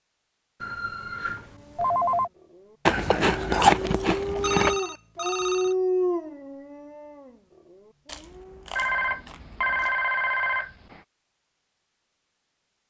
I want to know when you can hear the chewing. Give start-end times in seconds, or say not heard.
2.9-4.8, 8.1-9.9.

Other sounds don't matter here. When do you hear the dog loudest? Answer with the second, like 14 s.
6 s.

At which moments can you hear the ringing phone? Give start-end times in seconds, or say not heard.
0.6-2.3, 4.4-5.8, 8.8-11.0.